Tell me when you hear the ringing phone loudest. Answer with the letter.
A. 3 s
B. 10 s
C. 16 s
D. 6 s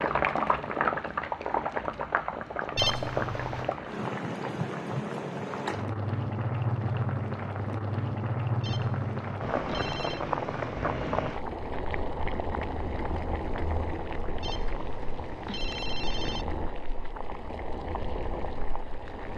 A.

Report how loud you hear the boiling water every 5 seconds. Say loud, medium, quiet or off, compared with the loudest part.
loud, loud, loud, medium.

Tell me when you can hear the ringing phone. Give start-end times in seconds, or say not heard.
2.8-3.8, 8.6-10.2, 14.4-16.4.